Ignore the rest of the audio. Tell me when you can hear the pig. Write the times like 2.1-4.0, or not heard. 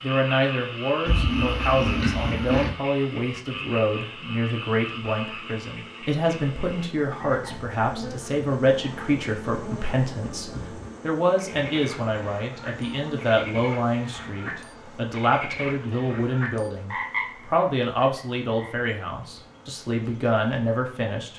1.1-2.8.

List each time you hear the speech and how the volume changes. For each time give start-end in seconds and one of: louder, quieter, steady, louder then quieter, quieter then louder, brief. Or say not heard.
0.0-21.3 steady.